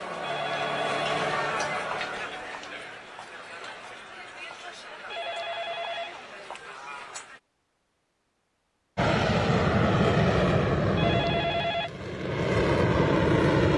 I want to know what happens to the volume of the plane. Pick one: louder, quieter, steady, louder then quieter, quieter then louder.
quieter then louder.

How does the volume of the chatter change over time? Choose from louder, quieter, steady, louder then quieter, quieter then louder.
quieter.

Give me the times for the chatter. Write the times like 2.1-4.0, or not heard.
0.0-7.4.